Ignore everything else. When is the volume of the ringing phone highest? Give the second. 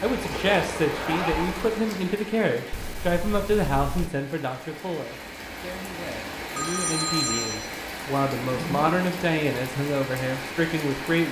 7 s.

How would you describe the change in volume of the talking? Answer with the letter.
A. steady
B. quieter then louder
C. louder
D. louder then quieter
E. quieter
B.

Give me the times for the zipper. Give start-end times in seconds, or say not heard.
0.9-1.5, 8.4-9.1.